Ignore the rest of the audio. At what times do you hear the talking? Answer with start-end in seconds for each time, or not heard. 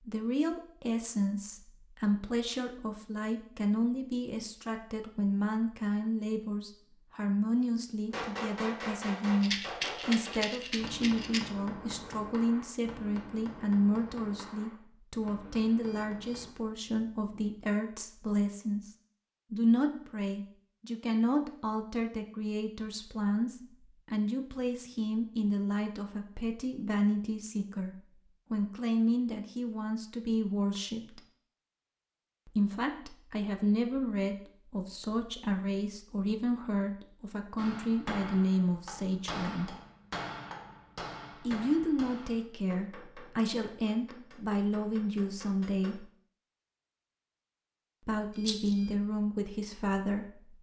0.0-18.9, 19.5-31.2, 32.5-39.8, 41.4-46.1, 48.0-50.5.